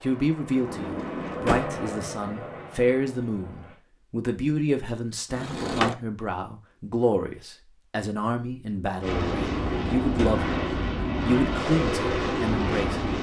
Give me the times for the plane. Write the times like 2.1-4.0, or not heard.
0.0-3.8, 9.0-13.1.